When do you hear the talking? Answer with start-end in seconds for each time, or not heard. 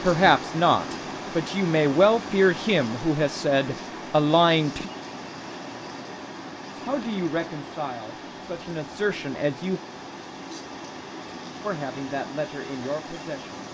0.0-4.9, 6.8-9.8, 11.6-13.7.